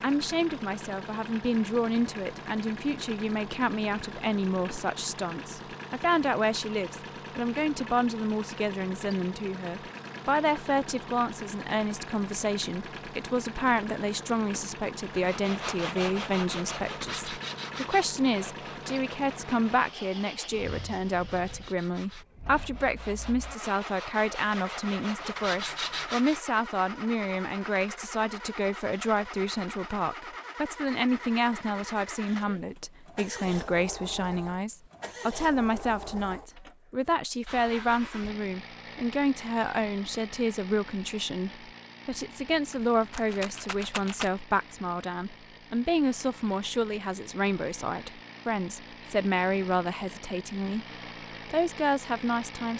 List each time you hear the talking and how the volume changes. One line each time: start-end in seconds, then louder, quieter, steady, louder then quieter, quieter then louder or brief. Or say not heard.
0.0-50.9 steady
51.5-52.7 brief.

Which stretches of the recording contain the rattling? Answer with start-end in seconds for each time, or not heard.
42.4-44.3.